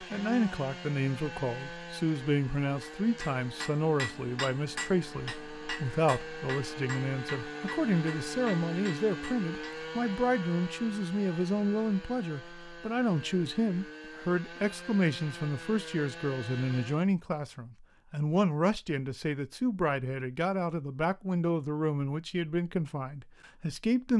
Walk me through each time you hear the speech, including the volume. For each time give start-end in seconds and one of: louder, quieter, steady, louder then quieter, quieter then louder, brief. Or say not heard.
0.0-24.1 steady.